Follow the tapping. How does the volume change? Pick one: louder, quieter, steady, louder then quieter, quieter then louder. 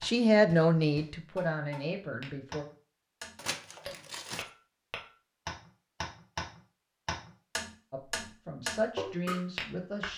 louder.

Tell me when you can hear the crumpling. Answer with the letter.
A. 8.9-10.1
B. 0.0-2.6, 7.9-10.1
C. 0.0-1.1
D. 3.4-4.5
D.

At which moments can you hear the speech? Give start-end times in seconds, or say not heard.
0.0-2.6, 7.9-10.1.